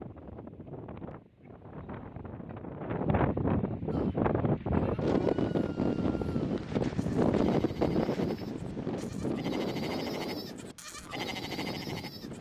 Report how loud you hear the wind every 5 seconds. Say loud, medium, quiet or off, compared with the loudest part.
loud, loud, medium.